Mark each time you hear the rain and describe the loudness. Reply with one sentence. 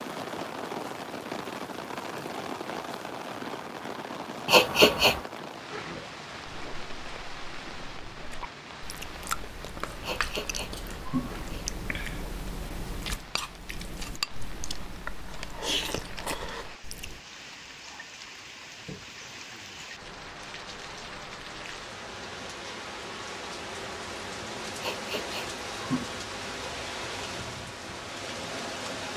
The rain can be heard from 0.0 to 29.1 s, getting quieter then louder.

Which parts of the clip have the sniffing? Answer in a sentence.
The sniffing can be heard from 4.5 to 5.2 s, from 10.0 to 11.7 s and from 24.8 to 26.2 s.